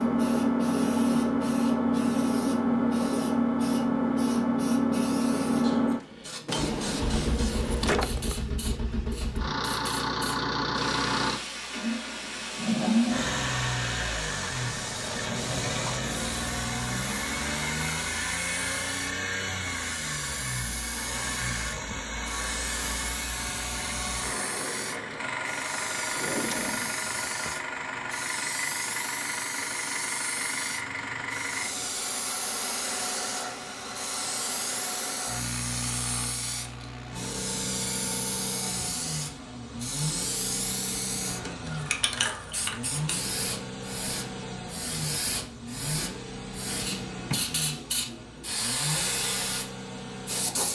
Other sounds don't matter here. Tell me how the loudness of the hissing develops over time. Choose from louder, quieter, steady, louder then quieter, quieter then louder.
louder.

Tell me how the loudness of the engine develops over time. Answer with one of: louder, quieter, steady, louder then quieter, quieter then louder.
quieter.